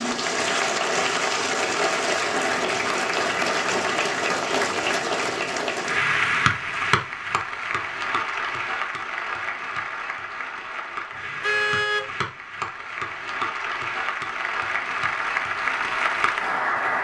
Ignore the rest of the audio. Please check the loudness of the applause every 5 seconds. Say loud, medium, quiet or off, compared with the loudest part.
loud, loud, medium, loud.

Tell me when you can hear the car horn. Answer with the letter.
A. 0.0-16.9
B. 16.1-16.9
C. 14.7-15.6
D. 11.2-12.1
D.